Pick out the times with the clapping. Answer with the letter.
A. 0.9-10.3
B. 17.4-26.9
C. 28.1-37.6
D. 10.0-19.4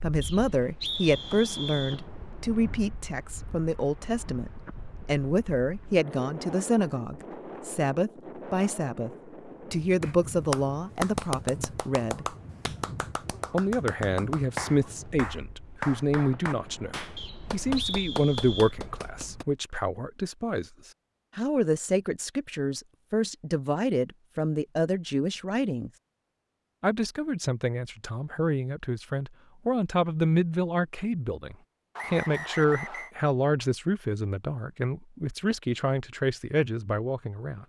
D.